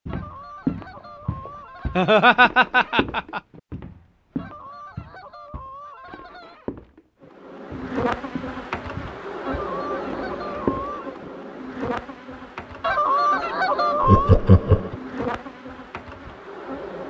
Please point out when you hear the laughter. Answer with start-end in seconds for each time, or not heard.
1.9-3.4, 14.0-14.9.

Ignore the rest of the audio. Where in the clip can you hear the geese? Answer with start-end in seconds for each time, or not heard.
0.1-2.1, 4.3-6.5, 9.4-11.2, 12.8-14.3.